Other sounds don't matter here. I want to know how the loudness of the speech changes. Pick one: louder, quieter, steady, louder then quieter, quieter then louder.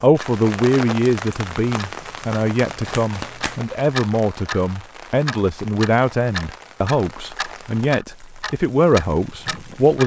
steady.